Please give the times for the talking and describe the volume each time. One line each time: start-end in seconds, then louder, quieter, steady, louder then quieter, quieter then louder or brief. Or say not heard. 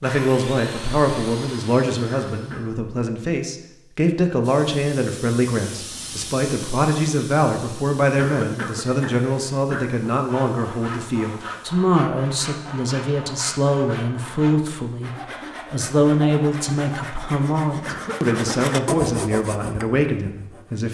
0.0-20.8 steady.